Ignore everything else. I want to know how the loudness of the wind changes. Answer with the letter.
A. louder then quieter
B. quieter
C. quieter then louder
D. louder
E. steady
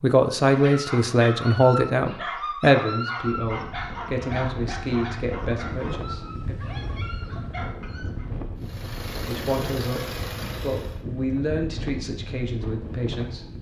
E.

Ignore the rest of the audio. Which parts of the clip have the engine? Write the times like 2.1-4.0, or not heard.
8.6-11.1.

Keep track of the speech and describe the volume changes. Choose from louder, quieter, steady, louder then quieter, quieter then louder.
quieter.